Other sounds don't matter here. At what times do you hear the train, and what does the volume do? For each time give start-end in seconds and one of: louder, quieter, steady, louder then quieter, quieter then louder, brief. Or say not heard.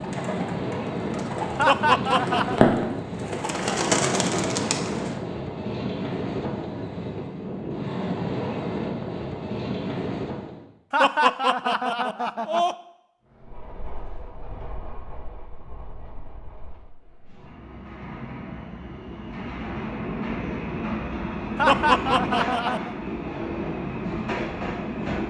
0.0-10.7 steady
13.3-25.2 louder.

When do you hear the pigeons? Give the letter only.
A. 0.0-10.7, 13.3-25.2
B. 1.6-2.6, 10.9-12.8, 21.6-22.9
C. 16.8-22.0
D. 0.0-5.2
D.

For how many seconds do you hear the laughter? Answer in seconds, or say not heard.
4 s.